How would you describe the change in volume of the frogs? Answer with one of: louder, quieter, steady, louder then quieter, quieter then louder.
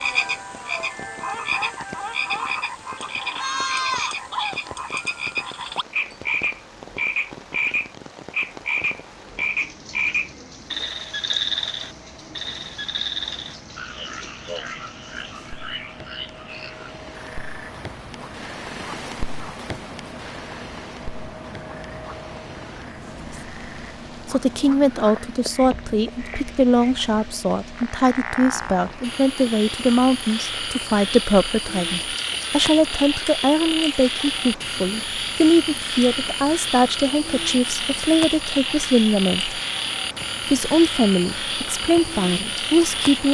quieter then louder.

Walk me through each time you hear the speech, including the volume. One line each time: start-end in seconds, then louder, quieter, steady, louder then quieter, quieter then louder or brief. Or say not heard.
24.2-39.6 steady
40.5-43.3 brief.